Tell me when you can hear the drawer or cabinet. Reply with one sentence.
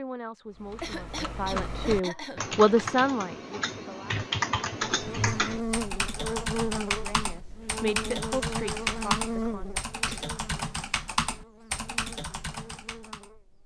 The drawer or cabinet can't be heard in this clip.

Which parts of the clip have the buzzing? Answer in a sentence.
You can hear the buzzing from 4.9 to 13.6 s.